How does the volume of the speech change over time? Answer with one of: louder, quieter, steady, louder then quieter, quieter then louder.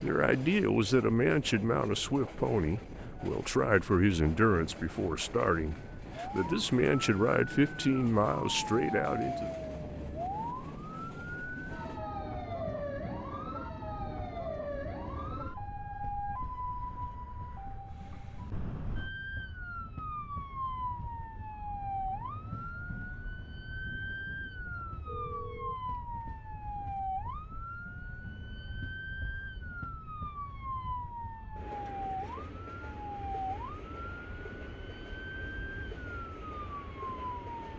steady.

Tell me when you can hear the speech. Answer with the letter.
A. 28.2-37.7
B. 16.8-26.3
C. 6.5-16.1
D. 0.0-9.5
D.